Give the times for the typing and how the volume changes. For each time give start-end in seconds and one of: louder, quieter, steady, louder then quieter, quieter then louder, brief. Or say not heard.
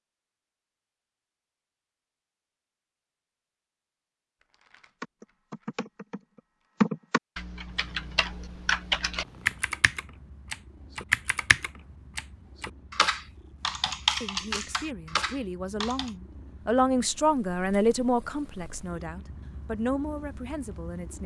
5.0-16.1 steady.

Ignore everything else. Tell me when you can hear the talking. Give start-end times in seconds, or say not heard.
14.2-21.2.